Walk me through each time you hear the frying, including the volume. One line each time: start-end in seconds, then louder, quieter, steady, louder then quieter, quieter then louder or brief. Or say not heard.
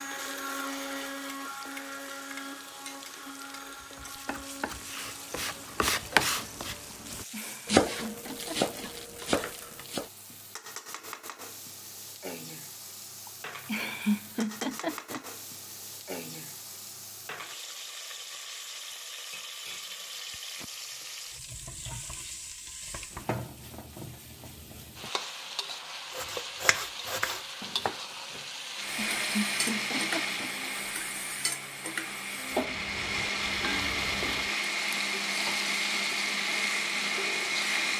0.0-37.9 louder.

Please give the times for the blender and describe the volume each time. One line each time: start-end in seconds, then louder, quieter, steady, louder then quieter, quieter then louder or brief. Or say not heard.
0.0-5.9 quieter
28.8-37.9 quieter then louder.